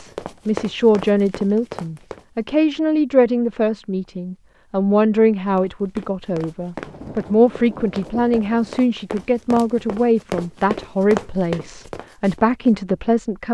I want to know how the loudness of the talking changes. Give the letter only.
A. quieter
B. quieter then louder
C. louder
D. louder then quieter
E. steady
E.